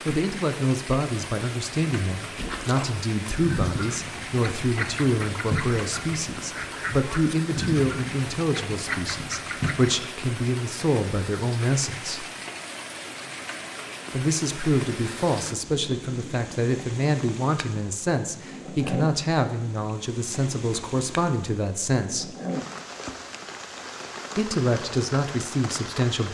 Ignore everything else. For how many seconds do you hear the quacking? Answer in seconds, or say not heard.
8 s.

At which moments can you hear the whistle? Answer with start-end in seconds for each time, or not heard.
not heard.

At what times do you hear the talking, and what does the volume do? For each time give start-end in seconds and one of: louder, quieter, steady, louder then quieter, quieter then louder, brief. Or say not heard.
0.1-12.2 steady
14.1-22.4 steady
24.4-26.2 brief.